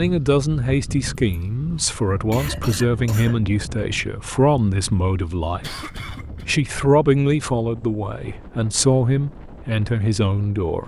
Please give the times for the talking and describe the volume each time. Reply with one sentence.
You can hear the talking from 0.0 to 10.8 s, at a steady volume.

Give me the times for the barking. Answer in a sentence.
You can't hear the barking here.